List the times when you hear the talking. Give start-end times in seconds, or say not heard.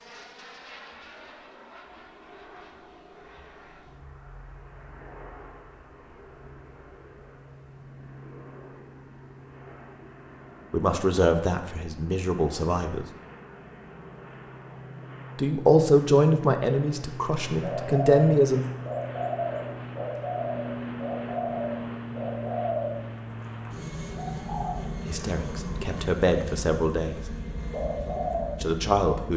10.7-13.1, 15.3-18.6, 25.1-27.2, 28.6-29.3.